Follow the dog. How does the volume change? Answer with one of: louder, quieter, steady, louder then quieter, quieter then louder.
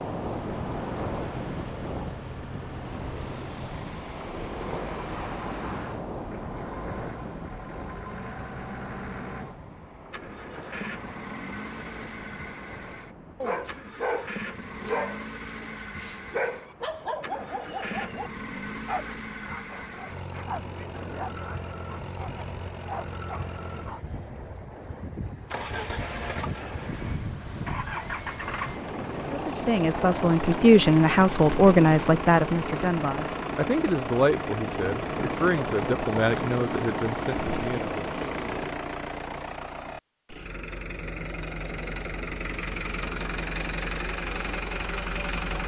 quieter.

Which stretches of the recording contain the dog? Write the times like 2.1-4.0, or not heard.
13.4-24.2.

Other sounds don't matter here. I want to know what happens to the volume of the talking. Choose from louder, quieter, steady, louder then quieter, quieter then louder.
quieter.